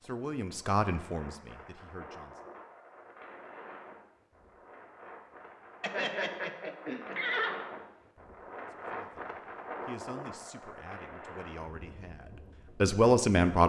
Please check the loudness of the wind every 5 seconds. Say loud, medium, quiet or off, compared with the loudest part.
medium, loud, loud.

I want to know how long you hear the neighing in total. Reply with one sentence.
You can hear the neighing for 2 seconds altogether.